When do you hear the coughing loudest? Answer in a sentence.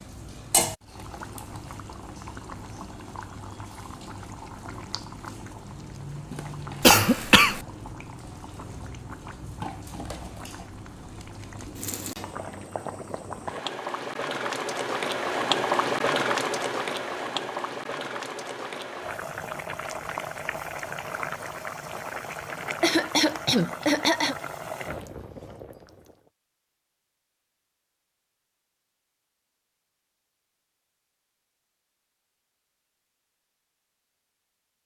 The loudest moment of the coughing is at 7 seconds.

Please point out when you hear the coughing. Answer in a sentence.
You can hear the coughing from 6.8 to 7.6 s and from 22.6 to 24.4 s.